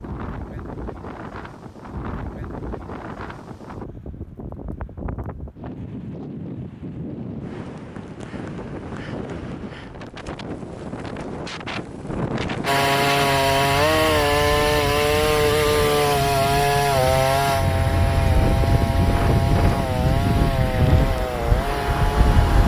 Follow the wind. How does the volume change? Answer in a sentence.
The volume of the wind goes up.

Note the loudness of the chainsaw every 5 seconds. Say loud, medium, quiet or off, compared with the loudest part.
off, off, loud, loud, medium.